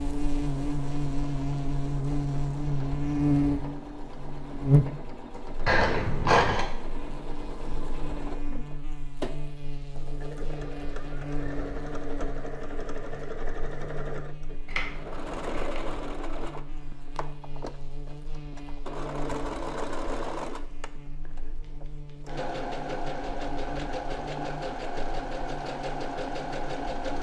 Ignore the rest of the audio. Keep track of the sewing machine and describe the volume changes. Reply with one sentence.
The loudness of the sewing machine goes up.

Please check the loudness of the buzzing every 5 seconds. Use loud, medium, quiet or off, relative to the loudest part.
loud, quiet, quiet, quiet, quiet, quiet.